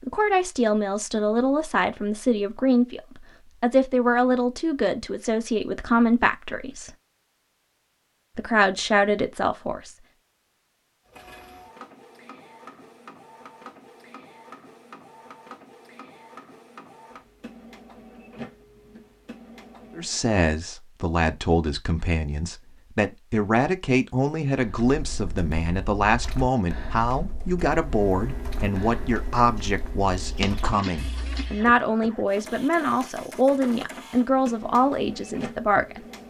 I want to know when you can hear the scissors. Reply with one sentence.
The scissors can be heard from 29.6 to 30.6 s.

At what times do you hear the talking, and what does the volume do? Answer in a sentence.
The talking can be heard from 0.0 to 6.9 s, at a steady volume; briefly from 8.3 to 9.9 s; and from 19.9 to 36.0 s, at a steady volume.